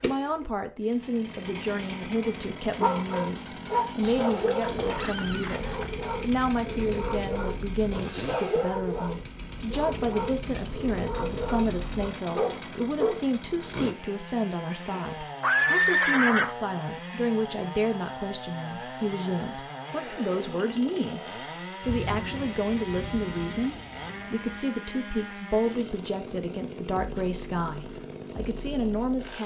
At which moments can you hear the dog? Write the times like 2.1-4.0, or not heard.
2.6-13.7.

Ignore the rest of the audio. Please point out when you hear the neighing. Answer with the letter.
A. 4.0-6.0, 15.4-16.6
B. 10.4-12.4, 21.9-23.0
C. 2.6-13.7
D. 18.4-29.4
A.